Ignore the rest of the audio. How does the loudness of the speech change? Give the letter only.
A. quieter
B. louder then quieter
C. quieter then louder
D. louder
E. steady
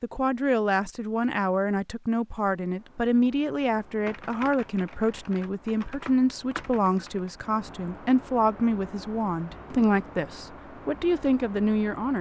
E.